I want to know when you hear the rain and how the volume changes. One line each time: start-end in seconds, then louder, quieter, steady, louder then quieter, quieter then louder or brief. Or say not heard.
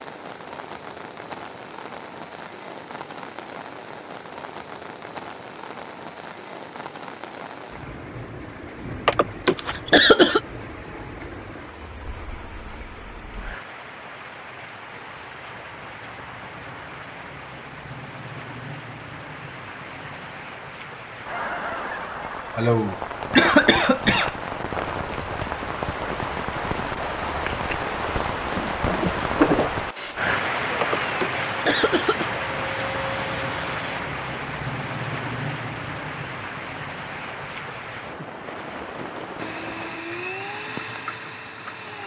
0.0-42.0 louder then quieter.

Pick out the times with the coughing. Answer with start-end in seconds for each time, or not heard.
9.1-10.4, 22.6-24.3, 30.8-32.3.